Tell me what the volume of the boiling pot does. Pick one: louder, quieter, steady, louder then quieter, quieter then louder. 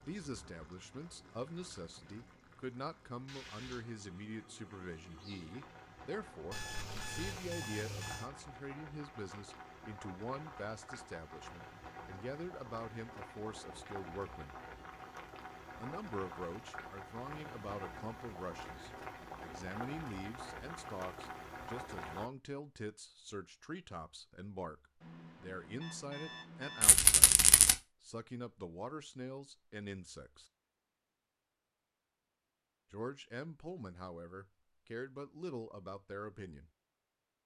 louder.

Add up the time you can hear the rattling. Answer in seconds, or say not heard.
2 s.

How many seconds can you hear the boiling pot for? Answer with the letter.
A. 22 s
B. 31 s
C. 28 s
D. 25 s
A.